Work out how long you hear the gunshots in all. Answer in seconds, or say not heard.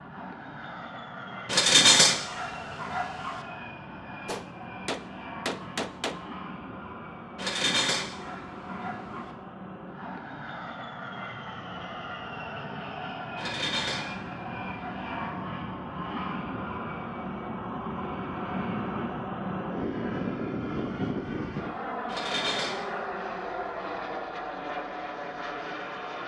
2 s.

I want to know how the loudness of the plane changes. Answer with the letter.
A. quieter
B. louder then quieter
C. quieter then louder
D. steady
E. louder
E.